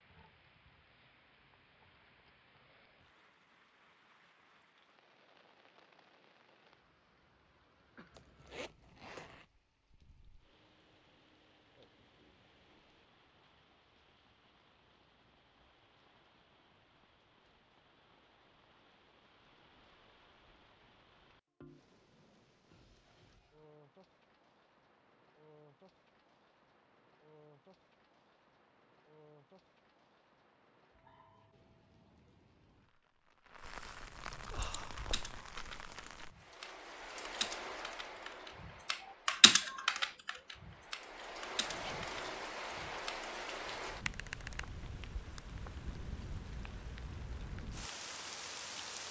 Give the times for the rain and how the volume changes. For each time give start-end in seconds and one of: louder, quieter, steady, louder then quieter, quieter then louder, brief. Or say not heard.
0.0-49.0 louder.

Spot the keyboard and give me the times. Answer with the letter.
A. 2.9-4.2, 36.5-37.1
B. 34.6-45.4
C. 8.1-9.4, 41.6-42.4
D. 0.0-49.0
B.